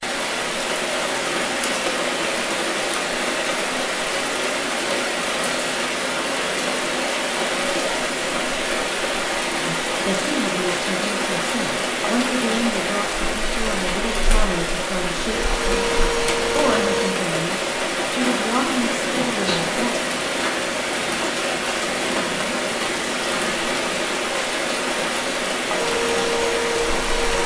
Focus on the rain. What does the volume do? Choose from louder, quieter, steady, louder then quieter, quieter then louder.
steady.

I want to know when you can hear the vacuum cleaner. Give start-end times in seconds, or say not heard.
15.3-17.2, 25.7-27.4.